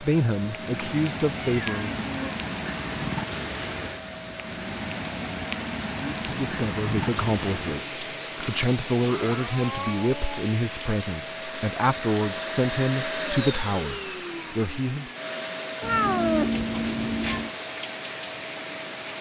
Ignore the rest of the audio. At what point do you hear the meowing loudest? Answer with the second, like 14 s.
16 s.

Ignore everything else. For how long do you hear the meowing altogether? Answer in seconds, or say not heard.
5 s.